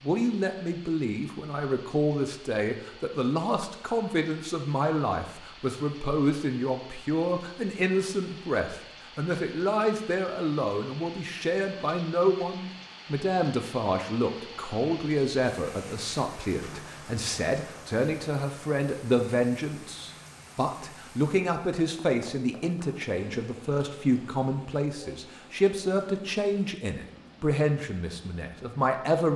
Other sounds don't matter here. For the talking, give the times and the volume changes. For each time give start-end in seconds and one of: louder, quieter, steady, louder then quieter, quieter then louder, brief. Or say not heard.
0.0-29.3 steady.